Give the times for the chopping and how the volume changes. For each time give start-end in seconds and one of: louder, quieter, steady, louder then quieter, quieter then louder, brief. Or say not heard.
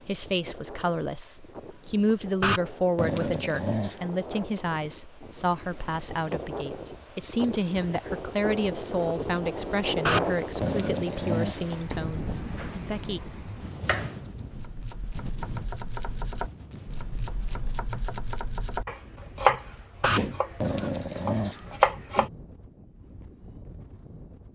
12.6-22.3 louder.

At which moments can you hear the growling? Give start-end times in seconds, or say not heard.
2.4-4.1, 10.1-12.1, 20.0-21.8.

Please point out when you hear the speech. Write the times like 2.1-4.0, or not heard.
0.1-13.2.